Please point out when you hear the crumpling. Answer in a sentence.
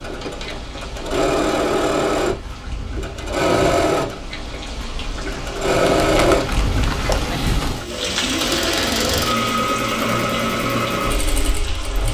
You can hear the crumpling from 6.0 to 7.3 s.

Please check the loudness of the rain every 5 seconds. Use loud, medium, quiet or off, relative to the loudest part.
medium, loud, medium.